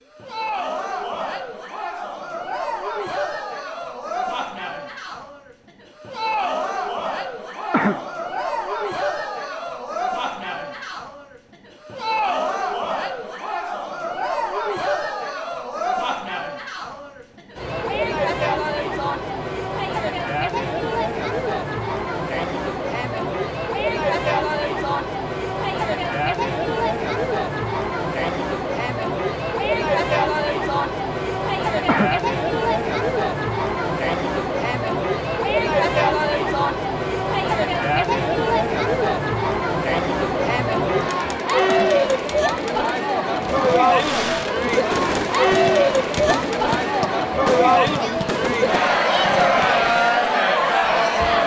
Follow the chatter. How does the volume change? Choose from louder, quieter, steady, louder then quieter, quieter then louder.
louder.